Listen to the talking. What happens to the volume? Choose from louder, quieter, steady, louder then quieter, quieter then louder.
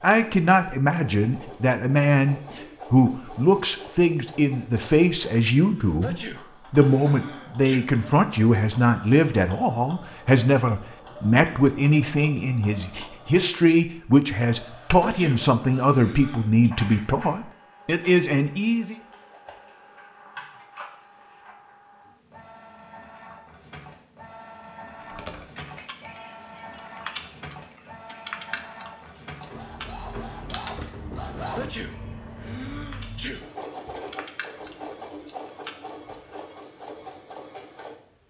steady.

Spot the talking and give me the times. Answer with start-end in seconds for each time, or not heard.
0.0-18.9.